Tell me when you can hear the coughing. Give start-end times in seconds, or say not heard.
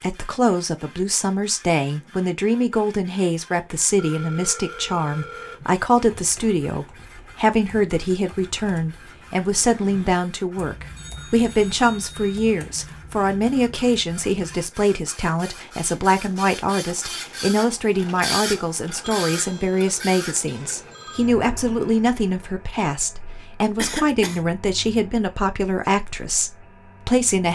23.8-24.4.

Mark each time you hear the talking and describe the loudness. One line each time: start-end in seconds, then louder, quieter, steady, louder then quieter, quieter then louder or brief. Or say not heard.
0.0-27.5 steady.